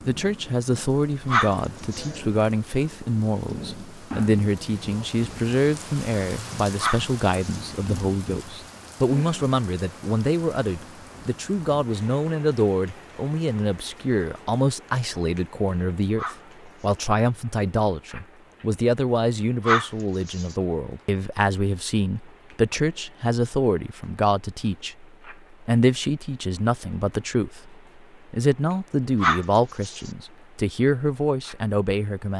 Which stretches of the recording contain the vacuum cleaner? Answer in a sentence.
You can't hear the vacuum cleaner here.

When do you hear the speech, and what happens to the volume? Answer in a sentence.
You can hear the speech from 0.1 to 32.3 s, at a steady volume.